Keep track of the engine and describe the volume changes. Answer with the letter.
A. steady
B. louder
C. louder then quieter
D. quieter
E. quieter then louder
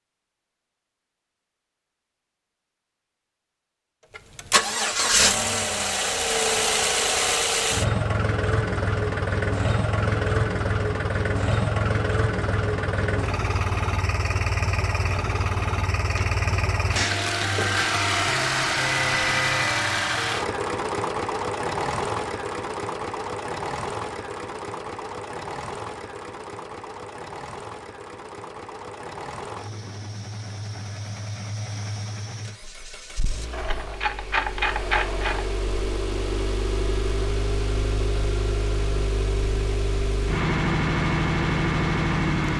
E.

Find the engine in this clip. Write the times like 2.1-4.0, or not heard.
4.1-42.5.